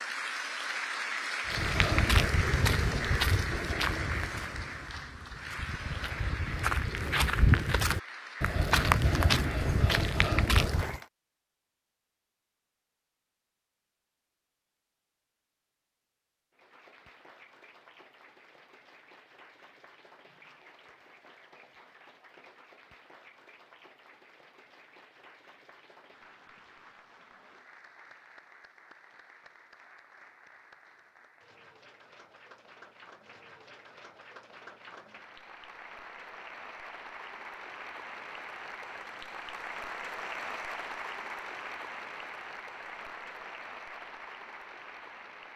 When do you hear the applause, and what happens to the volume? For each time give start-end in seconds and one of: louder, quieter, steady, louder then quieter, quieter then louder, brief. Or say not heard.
0.0-11.1 quieter
16.5-45.5 louder.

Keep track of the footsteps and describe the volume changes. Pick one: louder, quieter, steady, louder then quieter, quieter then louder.
quieter then louder.